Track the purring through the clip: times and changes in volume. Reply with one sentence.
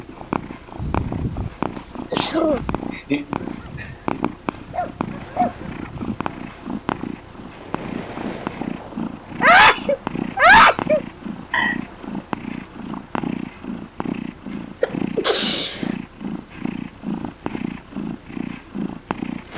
The purring can be heard from 0.0 to 19.5 s, at a steady volume.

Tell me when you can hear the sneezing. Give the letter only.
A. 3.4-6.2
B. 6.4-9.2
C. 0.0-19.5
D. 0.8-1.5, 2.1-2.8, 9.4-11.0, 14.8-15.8
D.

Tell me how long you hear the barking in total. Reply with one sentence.
You can hear the barking for 3 seconds altogether.